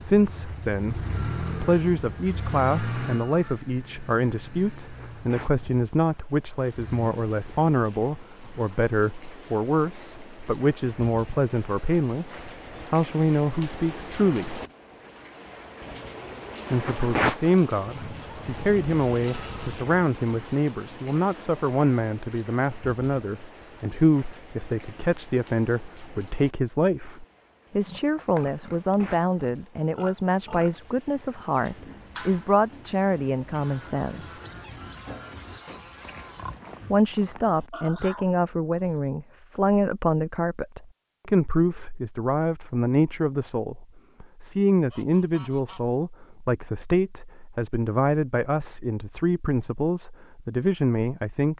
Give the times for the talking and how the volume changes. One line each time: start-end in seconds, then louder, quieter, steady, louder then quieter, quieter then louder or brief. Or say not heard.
0.0-14.6 steady
16.7-34.4 steady
36.9-51.5 steady.